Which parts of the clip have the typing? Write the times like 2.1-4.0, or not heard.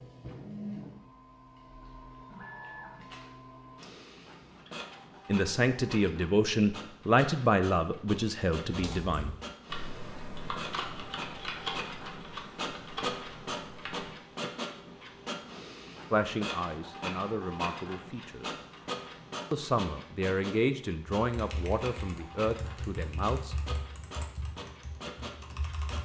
8.7-14.2, 21.1-26.0.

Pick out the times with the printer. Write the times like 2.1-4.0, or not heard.
0.0-26.0.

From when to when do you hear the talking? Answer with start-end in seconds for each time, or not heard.
5.2-9.3, 16.1-18.6, 19.5-23.6.